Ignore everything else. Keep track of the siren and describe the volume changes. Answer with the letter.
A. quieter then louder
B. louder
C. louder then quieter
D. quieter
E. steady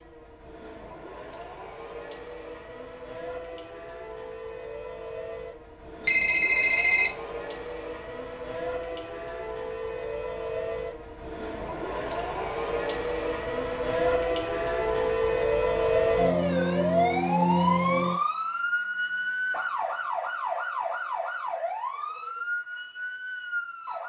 C.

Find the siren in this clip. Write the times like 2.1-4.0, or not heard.
0.0-24.0.